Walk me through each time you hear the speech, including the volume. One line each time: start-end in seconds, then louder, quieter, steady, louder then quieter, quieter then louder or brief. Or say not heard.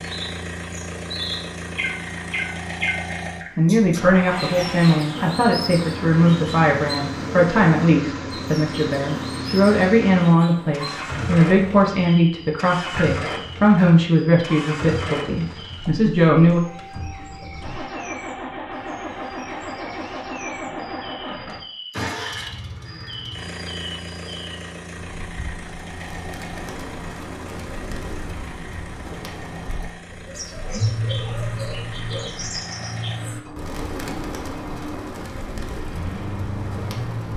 3.5-16.6 steady.